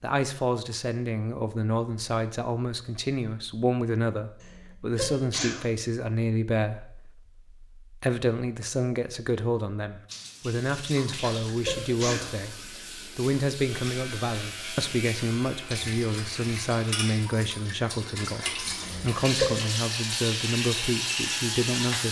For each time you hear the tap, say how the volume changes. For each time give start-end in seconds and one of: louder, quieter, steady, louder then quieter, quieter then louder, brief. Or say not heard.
10.1-22.0 louder.